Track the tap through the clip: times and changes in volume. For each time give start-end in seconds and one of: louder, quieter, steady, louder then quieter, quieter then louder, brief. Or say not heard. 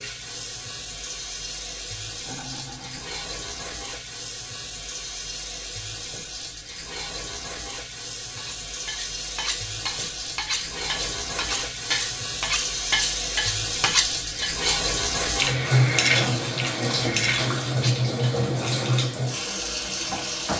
0.0-20.5 louder.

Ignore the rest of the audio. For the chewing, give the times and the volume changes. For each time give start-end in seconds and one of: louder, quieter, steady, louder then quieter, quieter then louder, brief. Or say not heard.
not heard.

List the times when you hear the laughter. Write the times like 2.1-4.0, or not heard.
2.2-3.1.